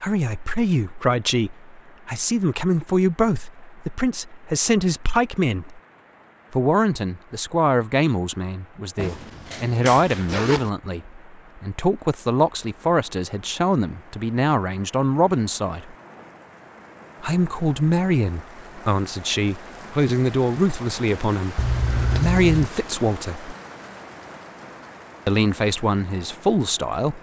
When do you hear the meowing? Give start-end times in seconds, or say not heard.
not heard.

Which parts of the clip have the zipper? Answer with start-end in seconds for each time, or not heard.
8.9-10.7, 21.6-22.7.